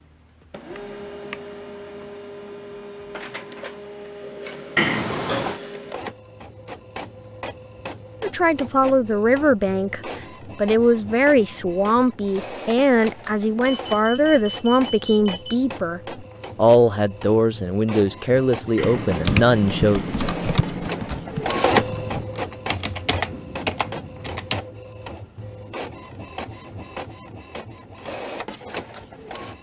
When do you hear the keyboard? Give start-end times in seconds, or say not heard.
18.8-24.6.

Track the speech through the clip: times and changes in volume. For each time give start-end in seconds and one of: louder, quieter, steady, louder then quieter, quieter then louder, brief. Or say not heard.
8.2-20.1 steady.